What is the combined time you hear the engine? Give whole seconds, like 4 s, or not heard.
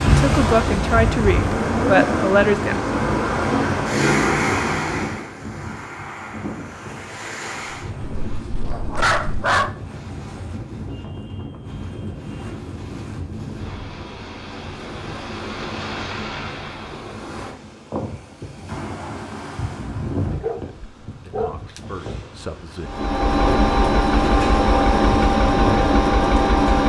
9 s.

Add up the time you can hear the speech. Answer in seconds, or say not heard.
5 s.